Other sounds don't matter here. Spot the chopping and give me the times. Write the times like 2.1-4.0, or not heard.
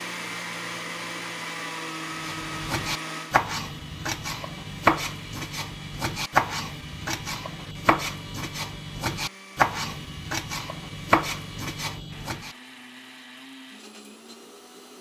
2.2-12.6.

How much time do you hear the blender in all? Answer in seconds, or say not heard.
15 s.